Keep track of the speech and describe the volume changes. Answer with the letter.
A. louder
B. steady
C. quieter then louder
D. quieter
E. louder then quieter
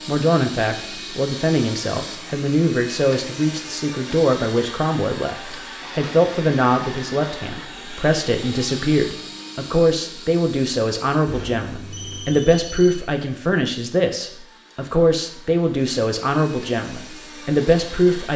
B.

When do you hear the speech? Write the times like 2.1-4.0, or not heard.
0.1-18.3.